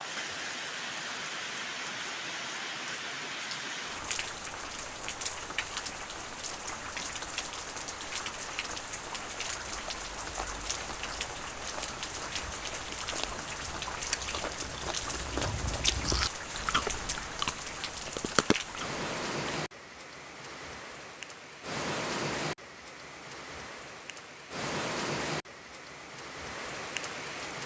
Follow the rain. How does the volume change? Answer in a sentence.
The volume of the rain stays about the same.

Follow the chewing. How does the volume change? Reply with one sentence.
The loudness of the chewing goes up.